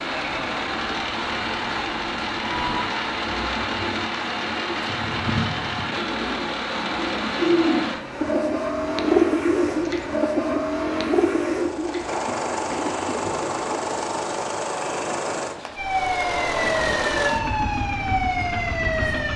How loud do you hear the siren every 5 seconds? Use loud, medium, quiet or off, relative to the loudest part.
medium, off, off, loud.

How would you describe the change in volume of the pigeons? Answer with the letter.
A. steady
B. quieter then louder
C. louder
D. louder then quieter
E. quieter
D.